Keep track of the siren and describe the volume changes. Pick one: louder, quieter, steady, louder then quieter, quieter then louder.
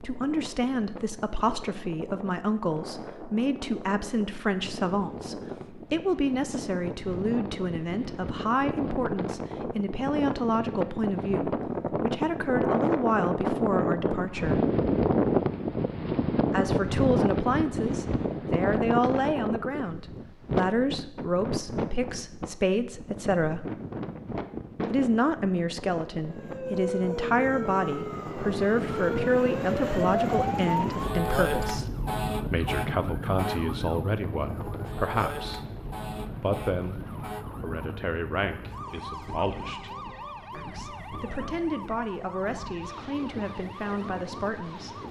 quieter.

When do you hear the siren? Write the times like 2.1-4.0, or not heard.
26.1-45.0.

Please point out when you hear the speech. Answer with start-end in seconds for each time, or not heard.
0.0-14.6, 16.4-23.6, 24.9-45.0.